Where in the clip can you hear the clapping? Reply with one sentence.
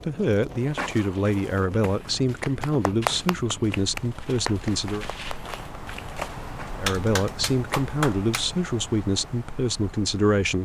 You can hear the clapping from 2.3 to 6.0 s and from 6.8 to 8.4 s.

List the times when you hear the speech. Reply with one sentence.
The speech can be heard from 0.0 to 5.0 s and from 6.8 to 10.6 s.